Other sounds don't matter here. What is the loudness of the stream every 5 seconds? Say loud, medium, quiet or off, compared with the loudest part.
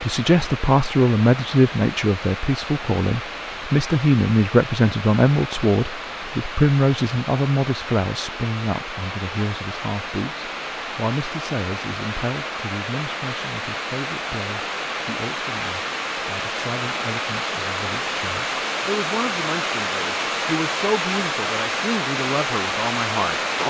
medium, medium, medium, loud, loud.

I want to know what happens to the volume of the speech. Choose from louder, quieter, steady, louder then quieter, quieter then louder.
quieter then louder.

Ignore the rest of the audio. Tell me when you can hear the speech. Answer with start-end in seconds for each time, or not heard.
0.0-23.6.